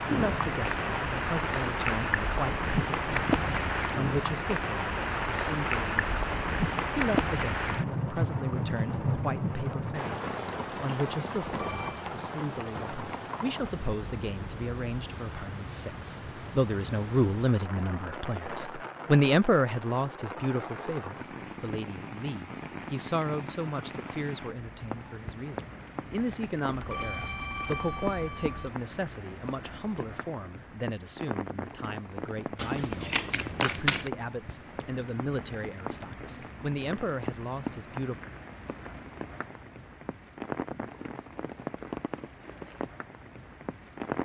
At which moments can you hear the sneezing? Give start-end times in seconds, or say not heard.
not heard.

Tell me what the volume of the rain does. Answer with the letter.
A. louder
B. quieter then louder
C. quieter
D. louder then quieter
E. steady
C.